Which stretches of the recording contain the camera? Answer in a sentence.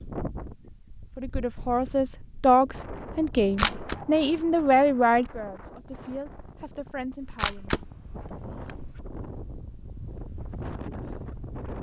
The camera can be heard from 3.4 to 4.0 s and from 7.2 to 9.0 s.